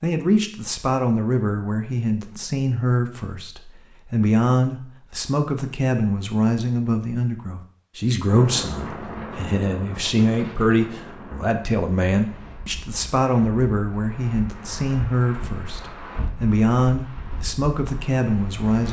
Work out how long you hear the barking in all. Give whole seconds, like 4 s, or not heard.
not heard.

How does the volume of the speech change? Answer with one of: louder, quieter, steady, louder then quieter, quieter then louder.
steady.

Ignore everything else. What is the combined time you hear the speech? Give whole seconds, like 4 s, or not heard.
19 s.